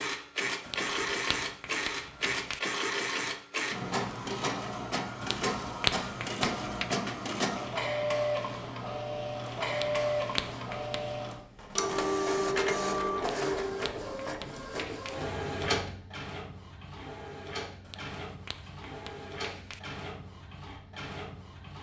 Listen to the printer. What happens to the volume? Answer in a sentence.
The volume of the printer goes down.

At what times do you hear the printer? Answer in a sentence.
The printer can be heard from 0.0 to 21.7 s.